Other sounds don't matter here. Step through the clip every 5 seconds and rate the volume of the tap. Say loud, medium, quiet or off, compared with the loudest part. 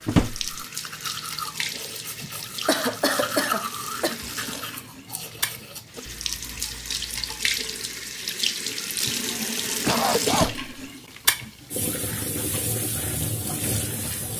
medium, loud, loud.